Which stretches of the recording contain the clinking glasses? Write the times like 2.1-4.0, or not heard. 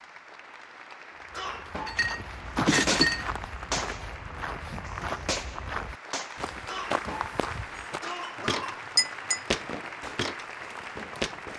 1.9-3.2, 8.3-9.4.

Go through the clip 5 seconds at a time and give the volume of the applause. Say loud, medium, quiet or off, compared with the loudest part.
medium, loud, loud.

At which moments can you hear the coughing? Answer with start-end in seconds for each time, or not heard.
1.3-2.1, 6.7-8.8.